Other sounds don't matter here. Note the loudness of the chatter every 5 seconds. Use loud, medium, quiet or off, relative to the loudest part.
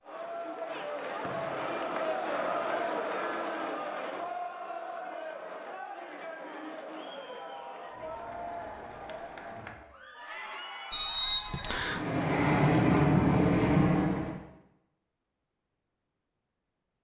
loud, medium, medium, off.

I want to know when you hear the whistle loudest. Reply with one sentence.
The loudest moment of the whistle is at 11 seconds.